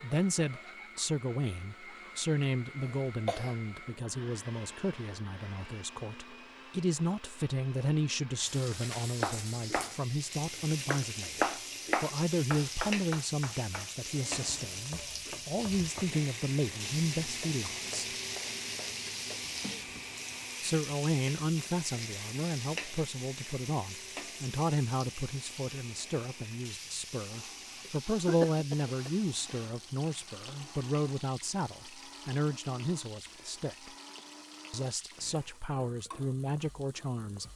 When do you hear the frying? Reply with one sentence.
The frying can be heard from 8.4 to 37.5 s.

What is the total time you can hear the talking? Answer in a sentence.
The talking can be heard for 34 seconds in total.